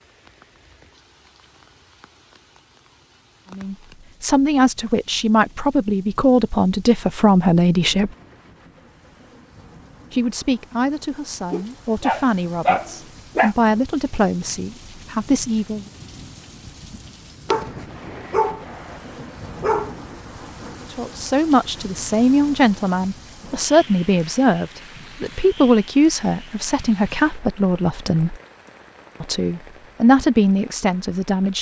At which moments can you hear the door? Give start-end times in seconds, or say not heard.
not heard.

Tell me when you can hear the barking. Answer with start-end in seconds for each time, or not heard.
11.5-13.6, 17.4-19.9.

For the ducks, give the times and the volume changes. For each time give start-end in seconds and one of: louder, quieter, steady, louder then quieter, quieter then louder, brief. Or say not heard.
not heard.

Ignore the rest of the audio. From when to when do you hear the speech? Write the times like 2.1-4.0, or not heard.
3.5-8.1, 10.1-15.8, 20.9-28.4, 29.2-31.5.